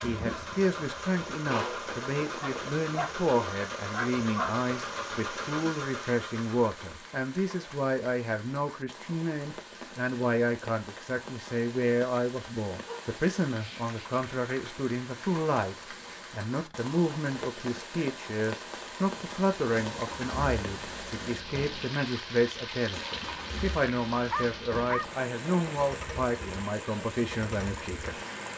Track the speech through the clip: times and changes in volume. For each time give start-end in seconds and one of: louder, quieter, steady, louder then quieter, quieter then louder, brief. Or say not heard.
0.0-28.5 steady.